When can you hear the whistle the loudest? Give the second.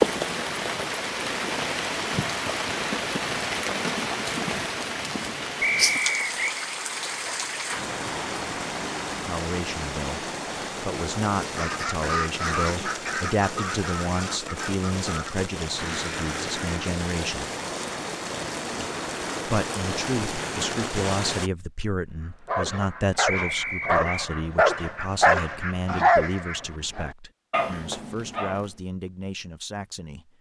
6 s.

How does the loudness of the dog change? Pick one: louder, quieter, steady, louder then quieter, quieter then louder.
louder then quieter.